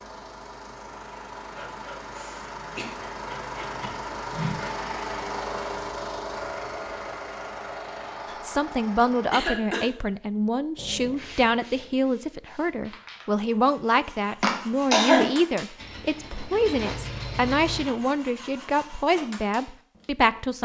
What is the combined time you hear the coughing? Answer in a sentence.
You can hear the coughing for 2 seconds altogether.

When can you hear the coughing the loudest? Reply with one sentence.
The loudest moment of the coughing is at 15 seconds.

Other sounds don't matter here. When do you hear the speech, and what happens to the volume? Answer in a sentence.
You can hear the speech from 8.3 to 20.5 s, at a steady volume.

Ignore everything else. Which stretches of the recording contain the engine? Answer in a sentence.
You can hear the engine from 0.0 to 9.5 s and from 15.8 to 17.9 s.